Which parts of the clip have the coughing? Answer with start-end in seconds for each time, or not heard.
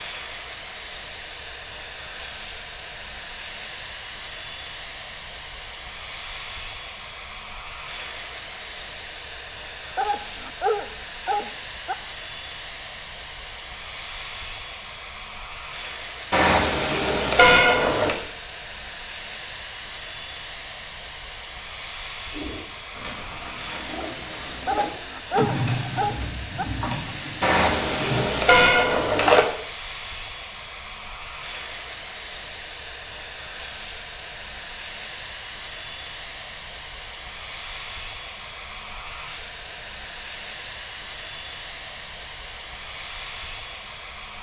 not heard.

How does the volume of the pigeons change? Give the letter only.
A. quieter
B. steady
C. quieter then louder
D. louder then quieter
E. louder
D.